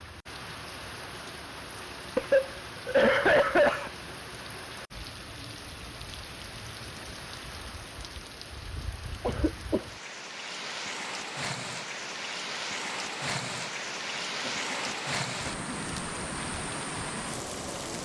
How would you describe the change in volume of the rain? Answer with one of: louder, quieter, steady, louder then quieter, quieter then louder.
louder.